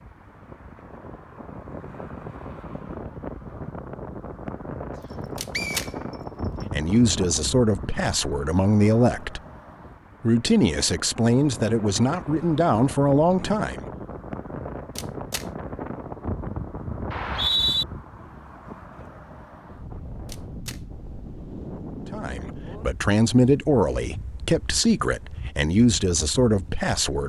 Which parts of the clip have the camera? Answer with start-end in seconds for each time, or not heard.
5.3-5.9, 14.9-15.4, 20.2-20.8.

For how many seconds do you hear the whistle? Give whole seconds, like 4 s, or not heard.
2 s.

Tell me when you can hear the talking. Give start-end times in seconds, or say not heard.
6.7-9.4, 10.2-13.8, 22.1-27.2.